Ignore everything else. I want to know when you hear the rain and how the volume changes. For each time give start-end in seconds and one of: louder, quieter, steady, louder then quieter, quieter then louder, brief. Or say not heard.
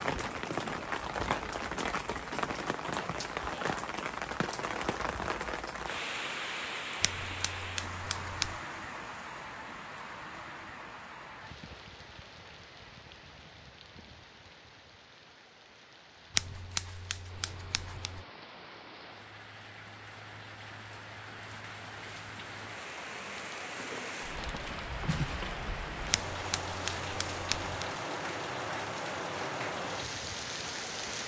0.0-31.2 quieter then louder.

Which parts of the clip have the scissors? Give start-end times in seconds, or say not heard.
7.0-8.6, 16.4-18.2, 26.1-27.9.